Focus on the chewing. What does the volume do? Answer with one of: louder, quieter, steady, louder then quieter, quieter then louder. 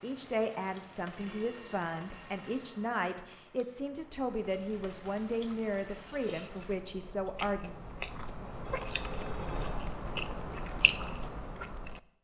louder.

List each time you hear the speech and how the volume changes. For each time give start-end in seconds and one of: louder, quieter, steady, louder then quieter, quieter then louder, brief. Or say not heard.
0.0-7.8 steady.